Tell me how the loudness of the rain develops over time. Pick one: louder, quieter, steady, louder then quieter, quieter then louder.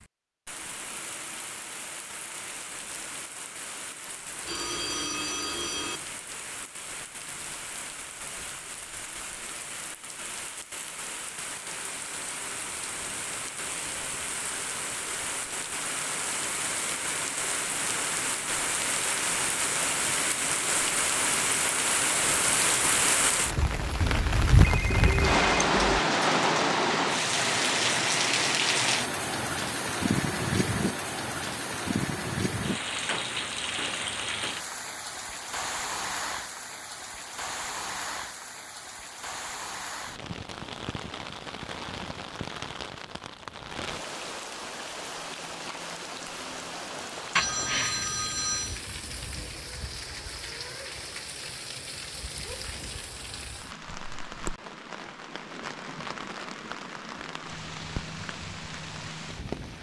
louder then quieter.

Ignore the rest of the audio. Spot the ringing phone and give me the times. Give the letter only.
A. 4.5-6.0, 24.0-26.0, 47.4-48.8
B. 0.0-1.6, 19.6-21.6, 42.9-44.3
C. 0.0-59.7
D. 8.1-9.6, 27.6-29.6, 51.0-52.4
A.